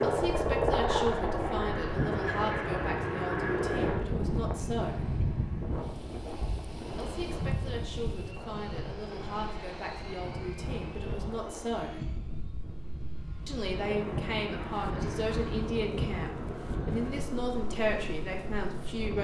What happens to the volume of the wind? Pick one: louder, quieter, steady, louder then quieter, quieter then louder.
quieter then louder.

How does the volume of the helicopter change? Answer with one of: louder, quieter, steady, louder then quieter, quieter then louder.
quieter.